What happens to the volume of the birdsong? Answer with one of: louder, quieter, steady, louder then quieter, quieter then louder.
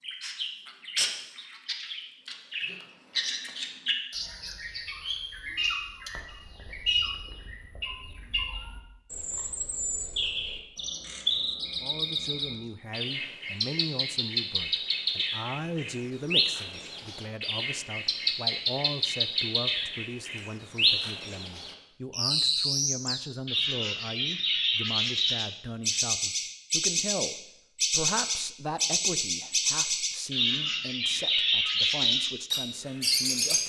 louder.